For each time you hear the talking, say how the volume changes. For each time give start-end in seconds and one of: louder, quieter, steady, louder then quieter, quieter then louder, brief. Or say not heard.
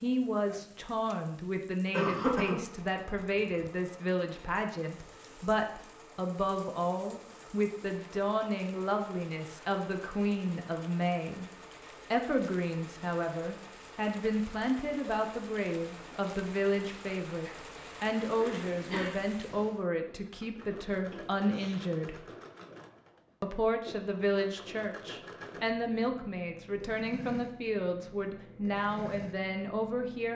0.0-11.4 steady
12.1-22.2 steady
23.4-30.3 steady.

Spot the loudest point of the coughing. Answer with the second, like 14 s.
2 s.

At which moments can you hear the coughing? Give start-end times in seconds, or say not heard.
1.9-2.6, 17.4-19.2.